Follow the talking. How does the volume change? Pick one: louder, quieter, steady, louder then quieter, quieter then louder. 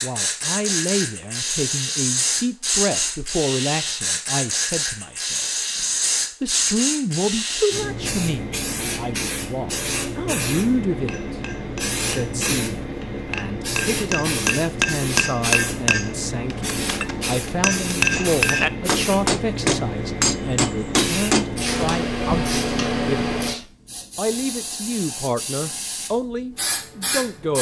steady.